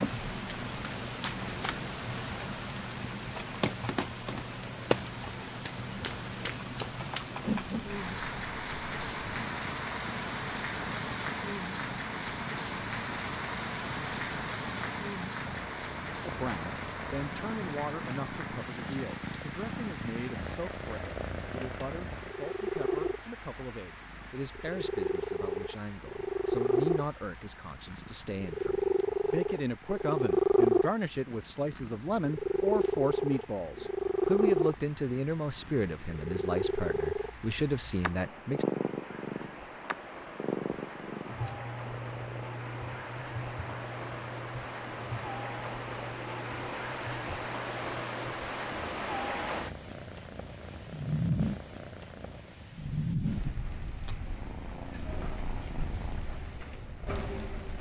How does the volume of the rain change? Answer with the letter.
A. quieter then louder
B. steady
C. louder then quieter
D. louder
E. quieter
A.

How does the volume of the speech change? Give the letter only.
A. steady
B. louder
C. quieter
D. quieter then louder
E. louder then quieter
B.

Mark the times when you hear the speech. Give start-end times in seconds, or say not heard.
16.2-38.6.